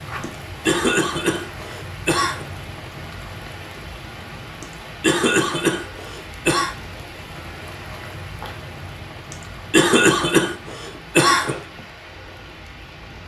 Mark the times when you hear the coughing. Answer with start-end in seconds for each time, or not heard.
0.2-2.5, 4.6-6.8, 9.3-11.6.